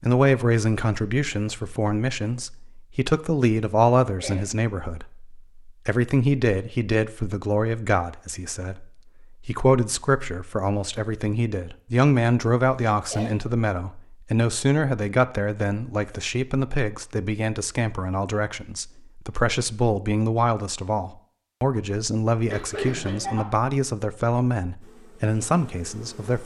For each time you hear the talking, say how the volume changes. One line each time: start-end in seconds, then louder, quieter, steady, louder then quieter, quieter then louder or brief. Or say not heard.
0.0-26.4 steady.